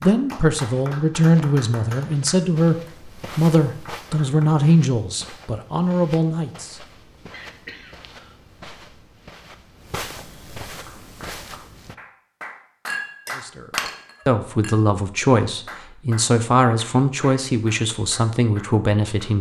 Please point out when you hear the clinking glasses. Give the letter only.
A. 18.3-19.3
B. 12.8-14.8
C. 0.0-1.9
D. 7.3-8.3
B.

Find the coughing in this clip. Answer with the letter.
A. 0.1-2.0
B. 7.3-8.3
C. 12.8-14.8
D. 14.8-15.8
B.